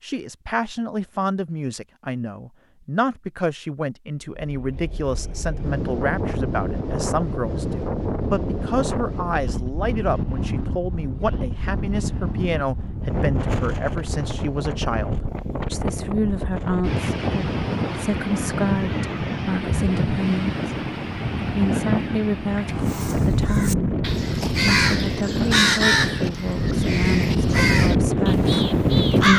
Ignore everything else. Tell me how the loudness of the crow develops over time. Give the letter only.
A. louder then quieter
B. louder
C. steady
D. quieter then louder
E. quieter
A.